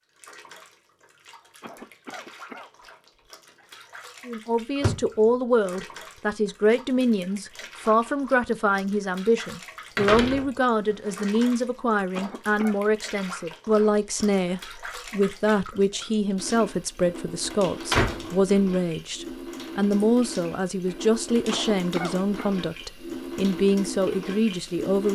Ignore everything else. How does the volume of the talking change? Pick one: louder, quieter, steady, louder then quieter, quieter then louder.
steady.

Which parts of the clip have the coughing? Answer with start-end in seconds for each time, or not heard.
1.6-2.7, 12.1-12.8, 21.5-22.6.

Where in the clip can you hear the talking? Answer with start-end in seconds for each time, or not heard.
4.2-25.1.